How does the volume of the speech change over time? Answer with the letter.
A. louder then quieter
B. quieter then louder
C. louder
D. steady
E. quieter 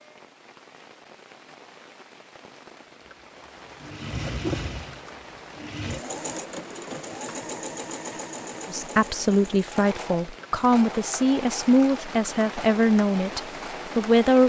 D.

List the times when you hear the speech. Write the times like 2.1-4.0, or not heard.
8.7-14.4.